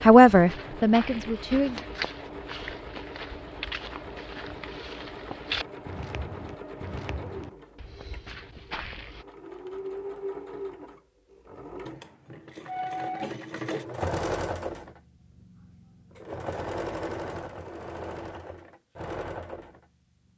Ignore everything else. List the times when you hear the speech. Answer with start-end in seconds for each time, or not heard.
0.0-1.8.